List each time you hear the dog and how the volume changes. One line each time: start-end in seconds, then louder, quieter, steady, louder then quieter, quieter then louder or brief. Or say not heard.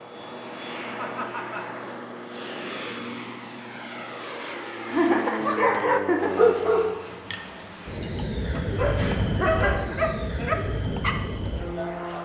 5.4-11.2 quieter then louder.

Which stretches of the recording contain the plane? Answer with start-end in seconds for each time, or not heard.
0.0-12.1.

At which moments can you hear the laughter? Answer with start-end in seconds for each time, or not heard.
0.8-1.6, 4.8-6.3, 8.9-10.5.